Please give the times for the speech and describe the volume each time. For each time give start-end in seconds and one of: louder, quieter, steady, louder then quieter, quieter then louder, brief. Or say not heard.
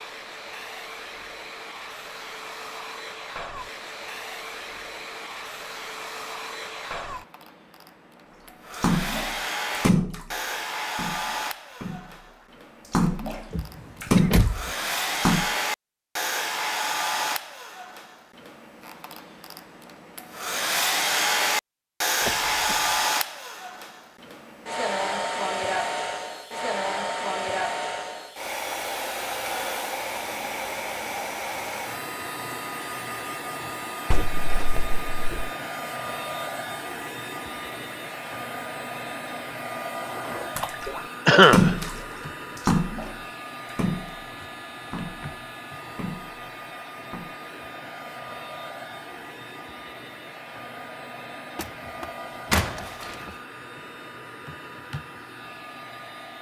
not heard.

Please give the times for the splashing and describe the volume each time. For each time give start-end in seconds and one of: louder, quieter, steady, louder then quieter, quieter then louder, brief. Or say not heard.
8.7-15.5 quieter then louder
40.0-47.4 quieter.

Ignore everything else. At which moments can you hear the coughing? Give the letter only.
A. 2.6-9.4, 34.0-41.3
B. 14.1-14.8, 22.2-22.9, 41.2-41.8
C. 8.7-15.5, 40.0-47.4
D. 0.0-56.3
B.